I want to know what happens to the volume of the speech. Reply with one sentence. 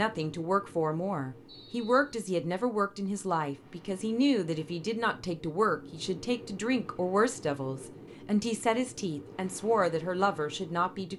The loudness of the speech stays about the same.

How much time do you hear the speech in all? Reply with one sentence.
The speech can be heard for 11 seconds in total.